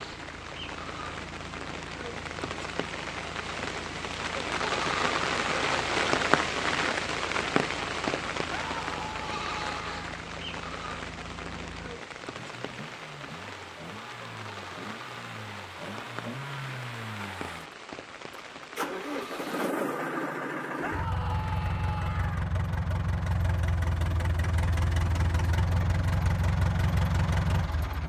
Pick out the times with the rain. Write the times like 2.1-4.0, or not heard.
0.0-19.8.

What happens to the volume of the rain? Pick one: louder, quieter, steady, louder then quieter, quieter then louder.
louder then quieter.